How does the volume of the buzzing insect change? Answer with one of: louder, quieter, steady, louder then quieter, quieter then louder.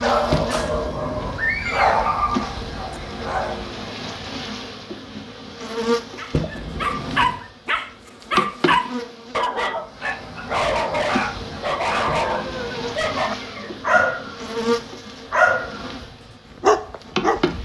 steady.